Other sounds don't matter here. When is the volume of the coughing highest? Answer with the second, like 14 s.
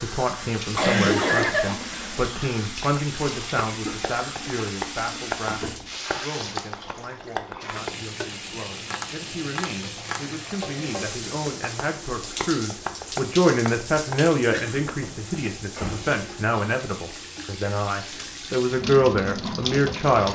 1 s.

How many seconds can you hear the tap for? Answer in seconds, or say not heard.
20 s.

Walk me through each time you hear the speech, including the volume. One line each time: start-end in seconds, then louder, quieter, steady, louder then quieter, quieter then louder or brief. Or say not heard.
0.0-20.3 quieter then louder.